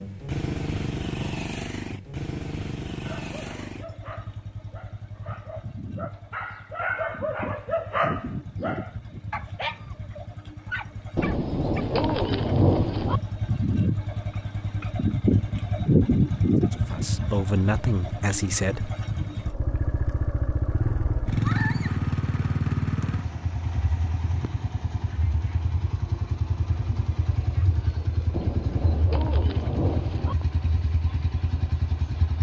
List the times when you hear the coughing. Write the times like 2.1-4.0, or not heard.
not heard.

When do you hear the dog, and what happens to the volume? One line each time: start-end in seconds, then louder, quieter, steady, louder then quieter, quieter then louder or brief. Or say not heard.
3.0-11.8 louder then quieter.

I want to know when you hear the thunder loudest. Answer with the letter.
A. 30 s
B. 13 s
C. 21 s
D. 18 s
B.